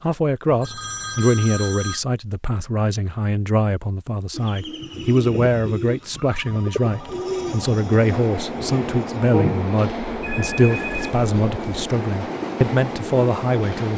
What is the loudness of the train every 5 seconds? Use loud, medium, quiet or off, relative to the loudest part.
off, loud, loud.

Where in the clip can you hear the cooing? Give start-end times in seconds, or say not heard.
4.3-9.7.